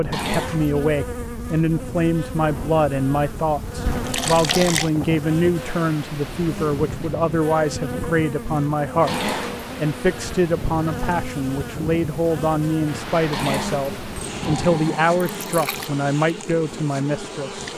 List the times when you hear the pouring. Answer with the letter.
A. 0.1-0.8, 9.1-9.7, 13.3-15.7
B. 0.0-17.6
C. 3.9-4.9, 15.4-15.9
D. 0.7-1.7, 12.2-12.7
C.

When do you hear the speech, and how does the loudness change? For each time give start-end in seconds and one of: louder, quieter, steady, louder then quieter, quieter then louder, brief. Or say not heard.
0.0-17.6 steady.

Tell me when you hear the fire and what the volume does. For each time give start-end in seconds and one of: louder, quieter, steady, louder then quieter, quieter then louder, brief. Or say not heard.
not heard.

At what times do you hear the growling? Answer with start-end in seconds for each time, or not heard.
0.1-0.8, 9.1-9.7, 13.3-15.7.